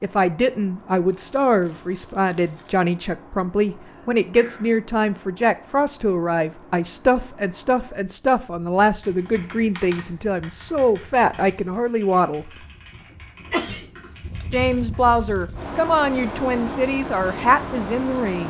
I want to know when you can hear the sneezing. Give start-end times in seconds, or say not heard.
3.9-4.7, 13.5-13.9.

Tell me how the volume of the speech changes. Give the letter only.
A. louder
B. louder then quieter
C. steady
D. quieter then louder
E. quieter
C.